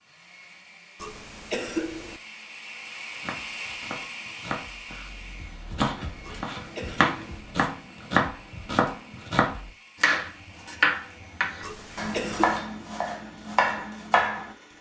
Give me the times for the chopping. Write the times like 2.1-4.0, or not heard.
3.1-14.5.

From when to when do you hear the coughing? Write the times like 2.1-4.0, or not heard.
1.0-2.2, 6.2-7.5, 11.6-12.6.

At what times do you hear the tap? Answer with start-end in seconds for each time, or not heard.
not heard.